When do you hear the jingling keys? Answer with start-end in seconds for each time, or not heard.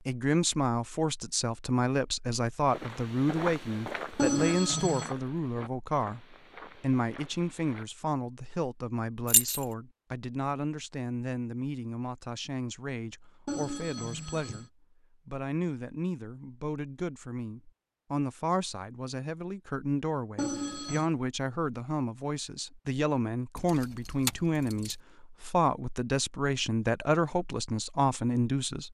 9.2-9.7, 23.6-24.9.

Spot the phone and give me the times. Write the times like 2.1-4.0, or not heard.
4.2-5.1, 13.4-14.7, 20.4-21.1.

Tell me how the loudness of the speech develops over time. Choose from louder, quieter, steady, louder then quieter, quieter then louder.
quieter then louder.